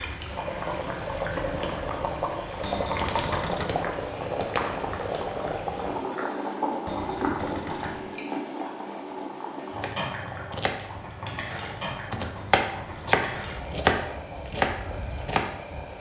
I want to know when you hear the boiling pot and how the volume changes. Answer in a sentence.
You can hear the boiling pot from 0.0 to 15.9 s, getting quieter.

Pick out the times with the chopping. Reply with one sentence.
You can hear the chopping from 9.8 to 15.9 s.